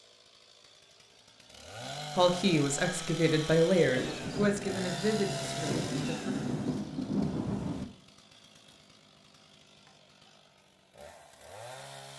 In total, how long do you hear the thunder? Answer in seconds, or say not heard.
4 s.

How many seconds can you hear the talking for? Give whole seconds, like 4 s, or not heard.
4 s.